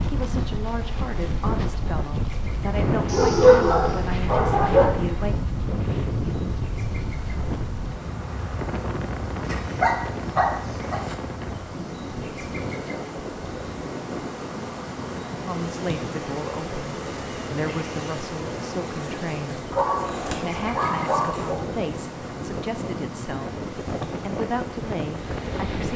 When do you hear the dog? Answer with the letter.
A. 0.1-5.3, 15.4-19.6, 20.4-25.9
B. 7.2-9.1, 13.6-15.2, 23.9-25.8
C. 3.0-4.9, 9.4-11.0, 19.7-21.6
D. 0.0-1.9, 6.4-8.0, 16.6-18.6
C.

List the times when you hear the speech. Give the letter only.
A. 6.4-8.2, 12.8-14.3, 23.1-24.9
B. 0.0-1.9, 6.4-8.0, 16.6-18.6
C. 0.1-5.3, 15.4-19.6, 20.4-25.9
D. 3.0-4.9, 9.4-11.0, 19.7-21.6
C.